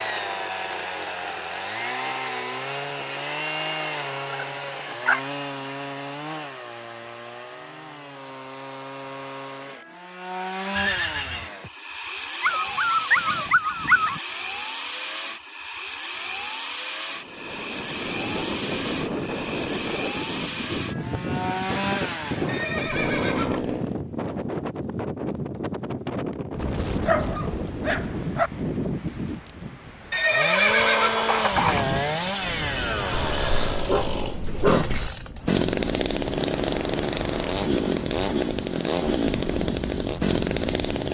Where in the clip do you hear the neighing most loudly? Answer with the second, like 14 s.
31 s.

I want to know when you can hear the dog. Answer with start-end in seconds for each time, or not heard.
4.3-5.2, 12.4-14.2, 27.1-28.5, 33.1-35.1.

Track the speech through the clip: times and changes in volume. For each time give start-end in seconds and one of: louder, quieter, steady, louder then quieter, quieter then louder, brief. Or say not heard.
not heard.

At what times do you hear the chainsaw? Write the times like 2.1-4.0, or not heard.
0.0-24.0, 30.2-41.0.